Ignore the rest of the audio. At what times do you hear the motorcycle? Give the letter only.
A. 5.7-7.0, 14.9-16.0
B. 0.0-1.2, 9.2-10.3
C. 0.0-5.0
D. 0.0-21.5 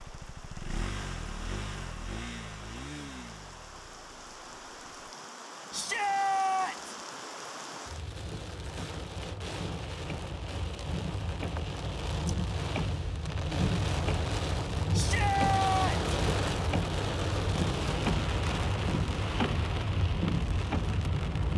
C.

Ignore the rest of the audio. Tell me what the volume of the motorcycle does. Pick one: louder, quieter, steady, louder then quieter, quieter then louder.
quieter.